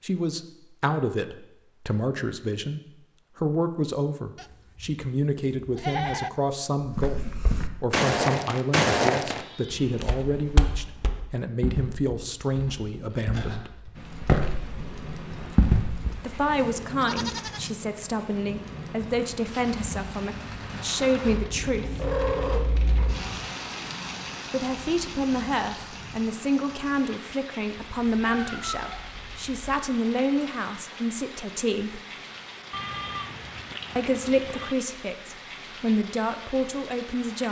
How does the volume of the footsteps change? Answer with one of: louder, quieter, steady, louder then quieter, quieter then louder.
quieter then louder.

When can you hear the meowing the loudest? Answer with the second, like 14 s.
22 s.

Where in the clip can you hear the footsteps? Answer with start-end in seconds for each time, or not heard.
6.8-16.4.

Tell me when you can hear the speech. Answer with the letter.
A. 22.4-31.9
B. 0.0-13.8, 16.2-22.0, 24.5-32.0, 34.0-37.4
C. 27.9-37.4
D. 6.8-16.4
B.